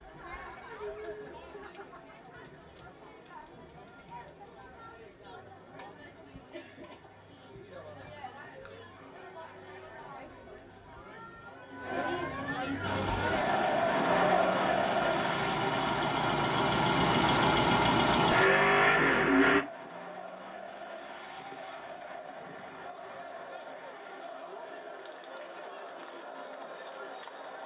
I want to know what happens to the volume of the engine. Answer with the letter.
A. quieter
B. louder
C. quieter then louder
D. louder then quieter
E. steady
B.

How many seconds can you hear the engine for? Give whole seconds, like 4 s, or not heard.
7 s.